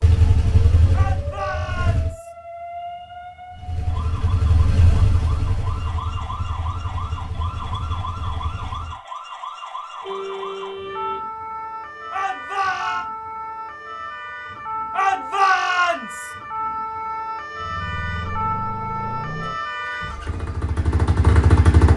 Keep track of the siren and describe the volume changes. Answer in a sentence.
The volume of the siren goes up.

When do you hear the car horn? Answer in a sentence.
You can hear the car horn from 10.0 to 11.2 s.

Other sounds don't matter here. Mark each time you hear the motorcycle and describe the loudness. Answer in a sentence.
You can hear the motorcycle briefly from 0.0 to 2.1 s; from 3.5 to 8.9 s, getting quieter; and from 17.6 to 21.9 s, getting louder.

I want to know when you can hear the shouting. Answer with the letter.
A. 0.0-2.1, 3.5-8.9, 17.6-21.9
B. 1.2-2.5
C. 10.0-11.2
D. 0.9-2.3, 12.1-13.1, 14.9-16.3
D.